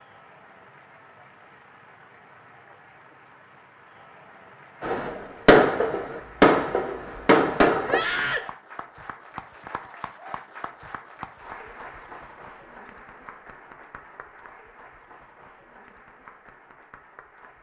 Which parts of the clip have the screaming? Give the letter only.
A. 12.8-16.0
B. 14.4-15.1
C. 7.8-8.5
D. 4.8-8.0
C.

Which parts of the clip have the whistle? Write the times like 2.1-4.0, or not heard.
not heard.